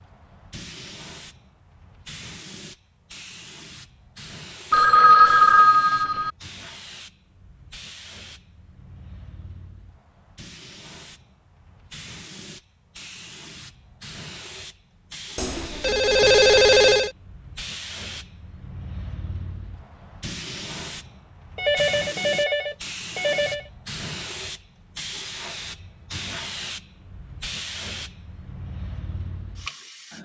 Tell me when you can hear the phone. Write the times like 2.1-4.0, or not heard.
4.7-6.3, 15.3-17.1, 21.6-23.7.